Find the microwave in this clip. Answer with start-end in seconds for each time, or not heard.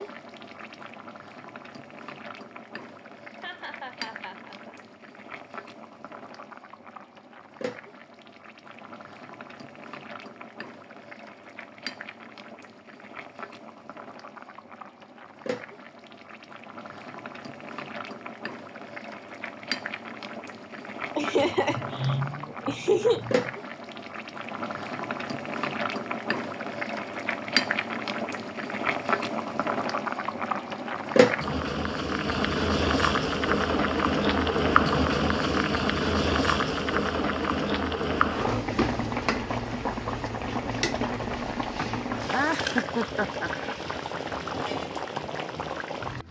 not heard.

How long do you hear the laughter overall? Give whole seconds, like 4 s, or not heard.
6 s.